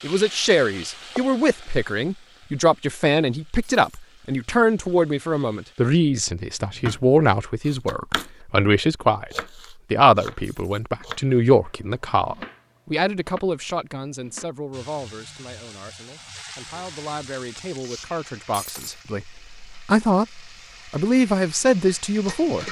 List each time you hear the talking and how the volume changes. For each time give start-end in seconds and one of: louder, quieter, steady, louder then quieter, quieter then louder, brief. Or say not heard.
0.0-22.6 quieter then louder.